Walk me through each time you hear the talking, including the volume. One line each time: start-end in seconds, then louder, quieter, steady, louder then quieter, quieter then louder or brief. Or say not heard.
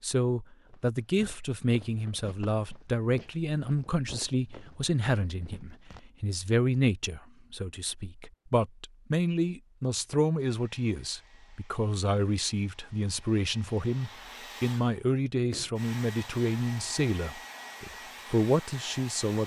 0.0-19.4 steady.